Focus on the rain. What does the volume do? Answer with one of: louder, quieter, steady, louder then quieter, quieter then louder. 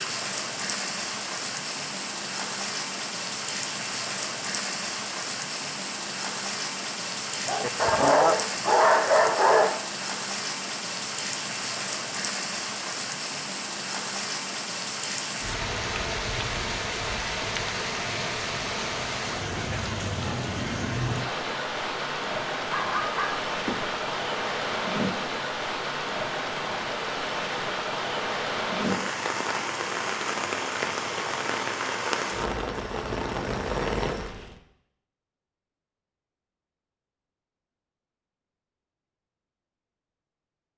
steady.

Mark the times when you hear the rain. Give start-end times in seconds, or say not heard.
0.0-34.5.